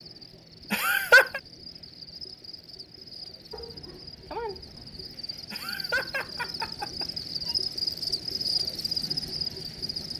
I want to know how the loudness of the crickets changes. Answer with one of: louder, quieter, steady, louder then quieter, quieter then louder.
louder.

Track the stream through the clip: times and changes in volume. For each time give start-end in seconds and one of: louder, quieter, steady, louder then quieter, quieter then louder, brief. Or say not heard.
not heard.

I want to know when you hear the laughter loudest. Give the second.
1 s.